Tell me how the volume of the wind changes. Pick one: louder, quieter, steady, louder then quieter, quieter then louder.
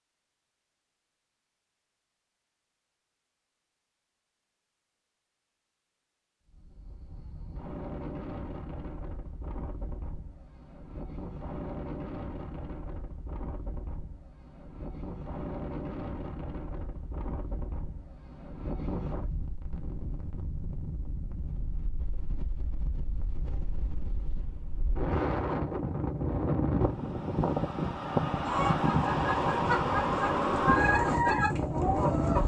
louder.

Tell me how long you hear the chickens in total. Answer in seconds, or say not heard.
4 s.